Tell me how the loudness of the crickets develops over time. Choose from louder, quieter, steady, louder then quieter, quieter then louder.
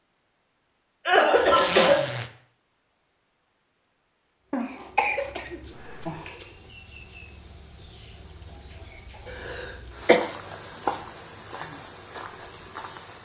louder then quieter.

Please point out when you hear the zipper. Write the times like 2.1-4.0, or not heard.
1.4-2.3.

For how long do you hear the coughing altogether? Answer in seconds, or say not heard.
4 s.